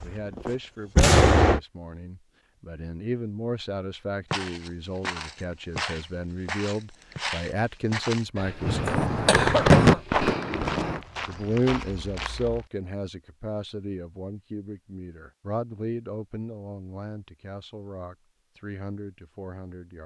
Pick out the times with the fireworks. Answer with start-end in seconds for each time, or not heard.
0.0-1.6, 8.6-11.0.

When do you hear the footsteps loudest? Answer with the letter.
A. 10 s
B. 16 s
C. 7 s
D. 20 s
A.